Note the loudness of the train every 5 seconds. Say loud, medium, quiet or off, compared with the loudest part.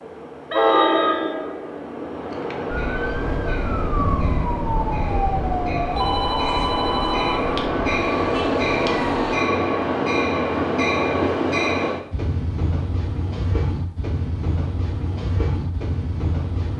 loud, loud, loud, medium.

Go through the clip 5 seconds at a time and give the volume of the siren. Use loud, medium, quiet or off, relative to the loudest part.
loud, loud, off, off.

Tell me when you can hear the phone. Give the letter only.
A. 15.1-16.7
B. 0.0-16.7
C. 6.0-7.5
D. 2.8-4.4
C.